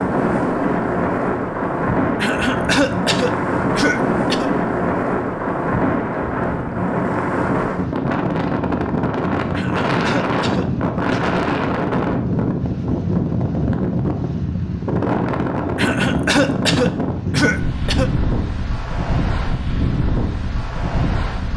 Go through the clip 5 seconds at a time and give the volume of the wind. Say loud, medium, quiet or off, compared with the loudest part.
loud, loud, loud, loud, medium.